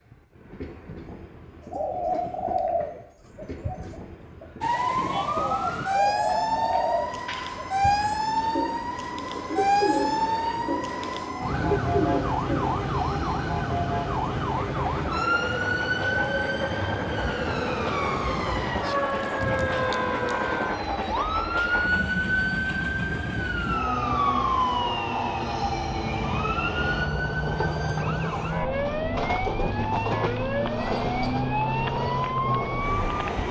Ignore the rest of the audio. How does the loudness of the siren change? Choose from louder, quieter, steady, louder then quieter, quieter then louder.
steady.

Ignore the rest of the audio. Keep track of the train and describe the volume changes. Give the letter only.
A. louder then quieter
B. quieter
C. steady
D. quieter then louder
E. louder
E.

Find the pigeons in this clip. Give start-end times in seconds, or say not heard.
1.6-12.8.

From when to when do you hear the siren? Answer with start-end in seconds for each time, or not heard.
4.6-33.4.